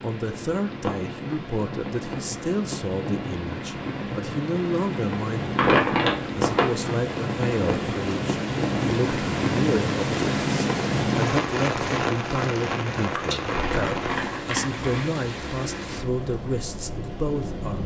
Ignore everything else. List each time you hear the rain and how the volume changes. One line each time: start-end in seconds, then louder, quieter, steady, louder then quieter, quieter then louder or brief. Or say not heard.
0.0-17.8 louder then quieter.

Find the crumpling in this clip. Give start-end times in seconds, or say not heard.
5.5-6.7, 13.5-15.2.